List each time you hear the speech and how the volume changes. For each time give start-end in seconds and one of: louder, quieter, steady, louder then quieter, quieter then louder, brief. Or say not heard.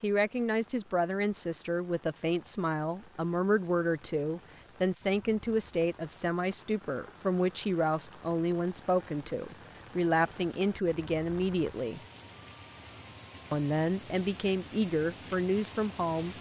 0.0-12.0 steady
13.5-16.3 brief.